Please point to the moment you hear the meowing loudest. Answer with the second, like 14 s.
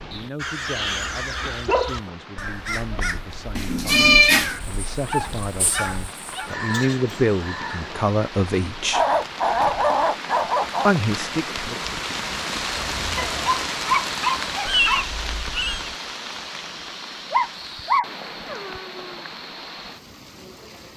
4 s.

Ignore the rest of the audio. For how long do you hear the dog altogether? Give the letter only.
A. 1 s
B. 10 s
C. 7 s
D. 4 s
B.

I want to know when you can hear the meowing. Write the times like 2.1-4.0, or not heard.
3.5-4.5, 14.7-15.9.